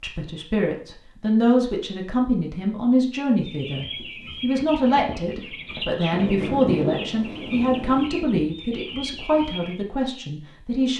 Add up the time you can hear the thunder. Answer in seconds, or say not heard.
2 s.